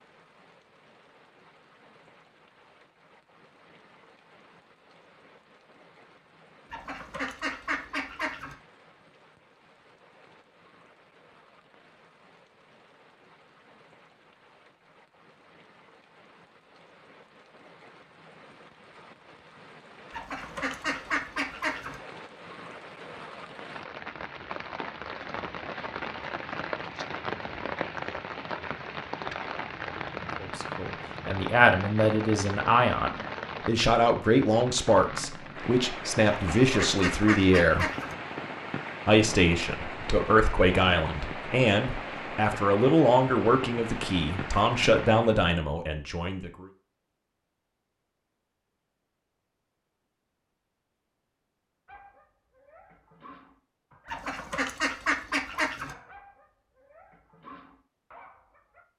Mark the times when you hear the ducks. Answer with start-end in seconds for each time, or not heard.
6.7-8.6, 20.1-22.0, 36.3-38.1, 54.0-56.0.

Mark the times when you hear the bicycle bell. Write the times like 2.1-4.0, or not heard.
not heard.